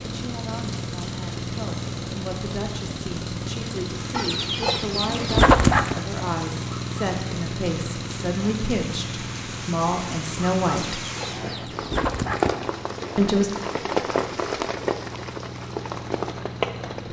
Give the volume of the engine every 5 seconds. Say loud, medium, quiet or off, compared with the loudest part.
loud, loud, medium, medium.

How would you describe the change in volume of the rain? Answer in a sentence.
The loudness of the rain goes up.